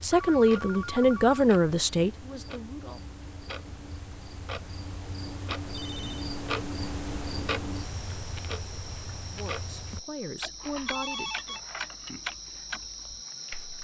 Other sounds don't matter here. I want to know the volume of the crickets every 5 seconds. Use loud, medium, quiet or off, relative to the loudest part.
medium, loud, loud.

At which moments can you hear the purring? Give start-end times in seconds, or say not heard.
not heard.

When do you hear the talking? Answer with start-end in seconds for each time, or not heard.
0.0-3.0, 9.2-11.6.